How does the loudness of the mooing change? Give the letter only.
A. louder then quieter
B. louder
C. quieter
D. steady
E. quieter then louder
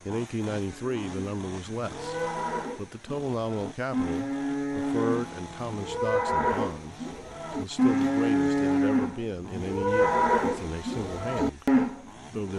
B.